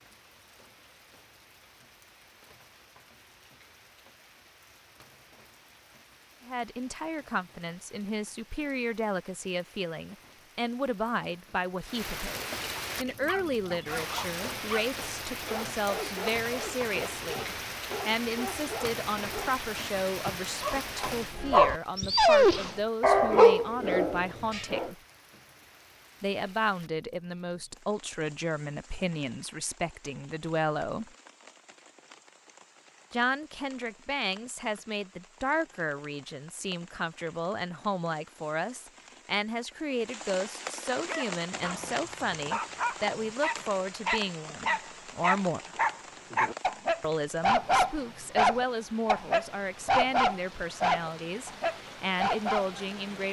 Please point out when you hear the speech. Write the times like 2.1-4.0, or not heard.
6.5-24.9, 26.2-31.1, 33.1-45.7, 47.0-53.2.